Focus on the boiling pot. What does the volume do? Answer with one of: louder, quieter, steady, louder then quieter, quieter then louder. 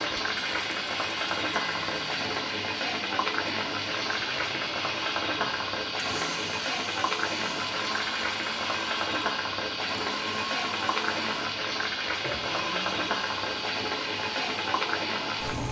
steady.